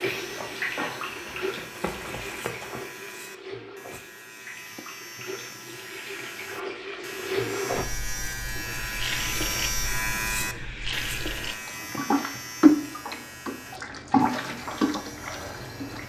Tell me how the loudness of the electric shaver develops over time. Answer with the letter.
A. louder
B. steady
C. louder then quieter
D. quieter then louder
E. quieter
C.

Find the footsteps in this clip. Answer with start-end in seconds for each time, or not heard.
0.0-2.9.